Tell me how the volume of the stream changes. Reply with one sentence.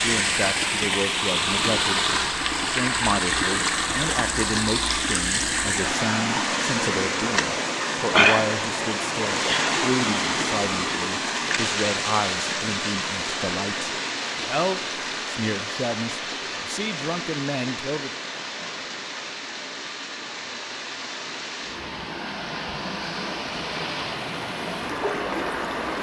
The loudness of the stream goes down.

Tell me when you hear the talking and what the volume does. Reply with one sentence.
The talking can be heard briefly from 0.0 to 2.0 s; and from 2.7 to 18.1 s, at a steady volume.